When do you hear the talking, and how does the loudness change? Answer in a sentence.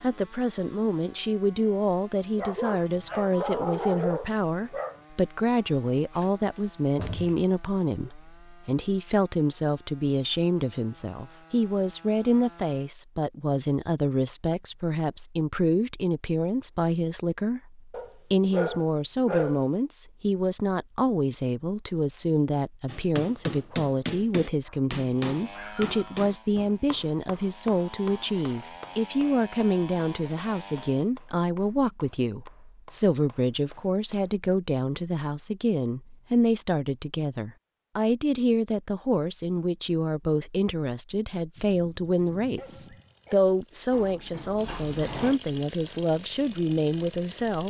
The talking can be heard from 0.0 to 47.6 s, at a steady volume.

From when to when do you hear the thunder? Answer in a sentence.
The thunder can't be heard in this clip.